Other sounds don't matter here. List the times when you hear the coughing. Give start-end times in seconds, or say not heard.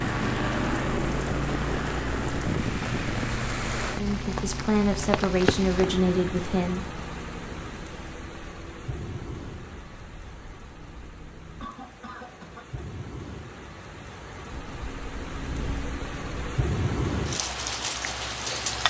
11.6-12.8.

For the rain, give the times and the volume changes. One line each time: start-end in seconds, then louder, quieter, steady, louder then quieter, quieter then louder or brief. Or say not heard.
0.0-18.8 quieter then louder.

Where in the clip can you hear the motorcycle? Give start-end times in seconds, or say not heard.
0.1-11.7, 14.5-16.6.